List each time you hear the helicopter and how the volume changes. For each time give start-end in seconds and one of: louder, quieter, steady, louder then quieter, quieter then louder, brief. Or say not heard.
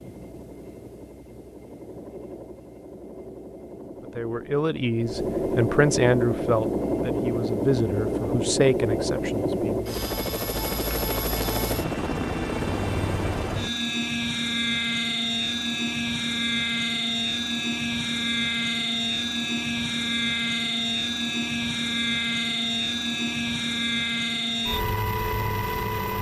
0.0-26.1 louder.